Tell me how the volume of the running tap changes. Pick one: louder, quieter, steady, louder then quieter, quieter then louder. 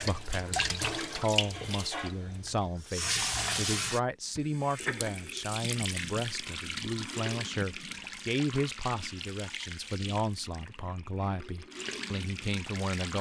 quieter.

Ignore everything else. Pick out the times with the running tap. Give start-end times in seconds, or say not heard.
0.0-13.1.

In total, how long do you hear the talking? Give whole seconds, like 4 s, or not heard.
13 s.